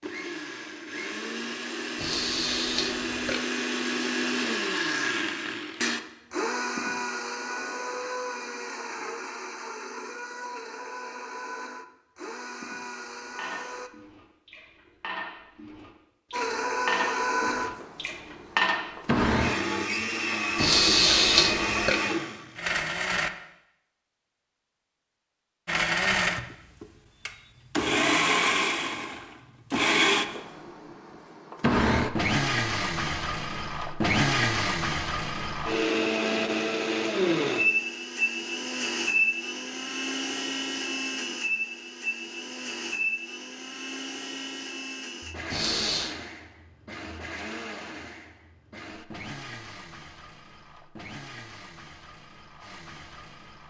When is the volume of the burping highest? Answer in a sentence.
The volume of the burping peaks at 21 seconds.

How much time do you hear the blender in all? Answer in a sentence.
The blender can be heard for 49 seconds in total.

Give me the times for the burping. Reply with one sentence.
The burping can be heard from 1.9 to 3.4 s, from 20.6 to 21.9 s and from 45.5 to 46.1 s.